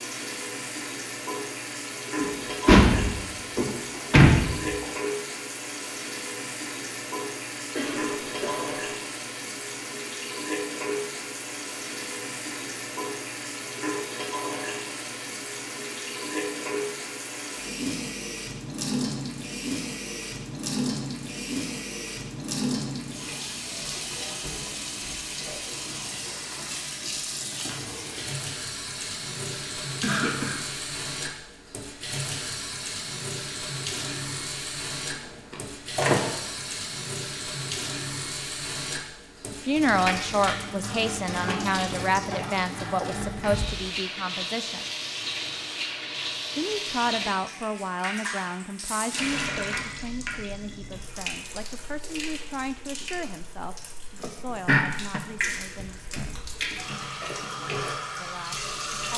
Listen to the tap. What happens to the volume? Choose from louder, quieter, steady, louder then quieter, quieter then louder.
steady.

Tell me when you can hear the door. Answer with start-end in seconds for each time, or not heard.
2.2-4.8, 35.5-36.2.